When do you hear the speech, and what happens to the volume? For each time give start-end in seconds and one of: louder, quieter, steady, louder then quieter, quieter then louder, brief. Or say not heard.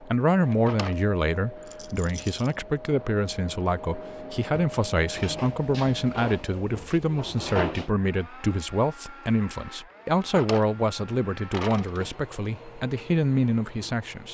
0.0-14.2 steady.